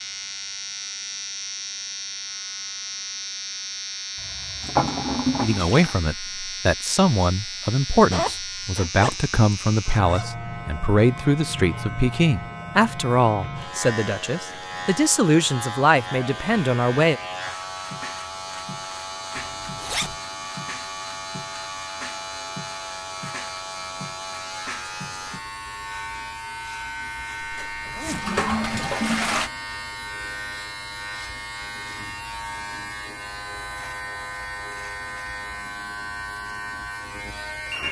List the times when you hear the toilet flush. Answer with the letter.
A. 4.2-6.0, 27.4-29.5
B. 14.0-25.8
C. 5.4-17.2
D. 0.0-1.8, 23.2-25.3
A.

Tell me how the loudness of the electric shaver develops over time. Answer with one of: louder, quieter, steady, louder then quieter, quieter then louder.
steady.